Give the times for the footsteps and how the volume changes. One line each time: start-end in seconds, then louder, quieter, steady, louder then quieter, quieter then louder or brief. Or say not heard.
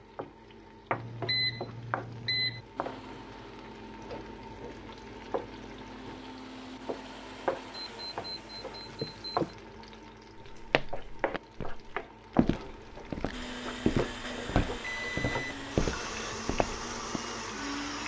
10.3-17.2 louder.